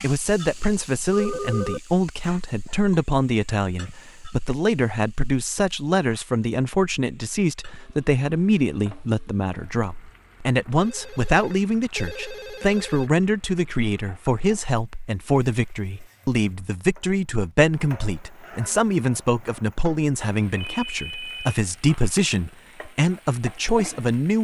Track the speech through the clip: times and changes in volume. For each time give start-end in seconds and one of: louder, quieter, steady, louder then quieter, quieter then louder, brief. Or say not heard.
0.0-24.3 steady.